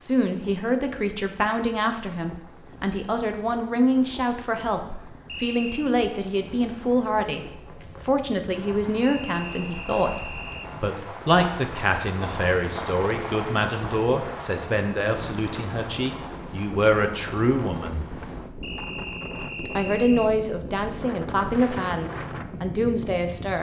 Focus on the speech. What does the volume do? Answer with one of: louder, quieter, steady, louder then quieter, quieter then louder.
steady.